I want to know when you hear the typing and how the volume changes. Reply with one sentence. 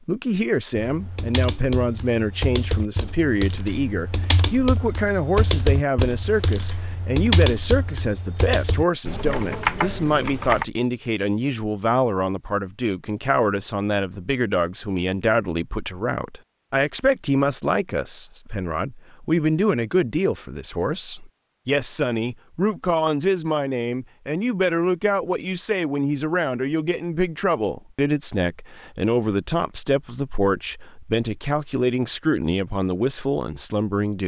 The typing can be heard from 0.8 to 10.7 s, getting louder.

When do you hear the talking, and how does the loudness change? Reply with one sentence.
The talking can be heard from 0.1 to 34.2 s, at a steady volume.